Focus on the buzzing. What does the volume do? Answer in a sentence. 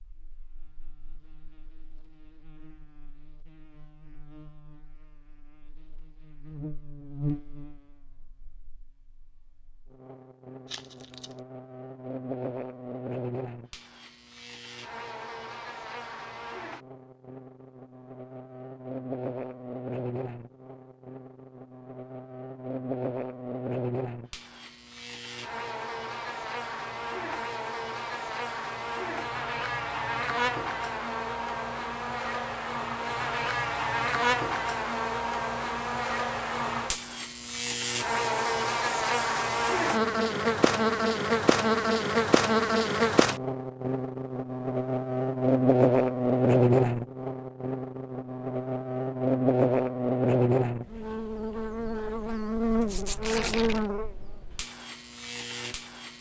The loudness of the buzzing goes up.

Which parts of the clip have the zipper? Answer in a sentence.
The zipper can be heard from 52.8 to 53.5 s.